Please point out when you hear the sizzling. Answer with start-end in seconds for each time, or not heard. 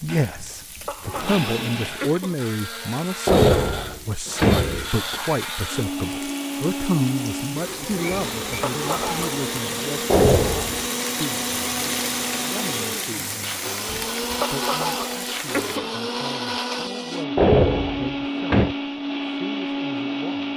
0.0-15.8.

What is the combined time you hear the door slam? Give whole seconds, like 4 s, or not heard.
4 s.